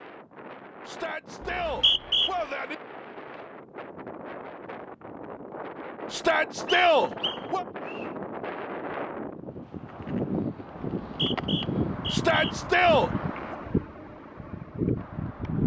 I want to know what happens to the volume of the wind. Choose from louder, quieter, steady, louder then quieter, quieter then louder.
louder.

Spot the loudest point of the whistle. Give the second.
2 s.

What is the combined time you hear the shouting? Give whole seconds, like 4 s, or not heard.
5 s.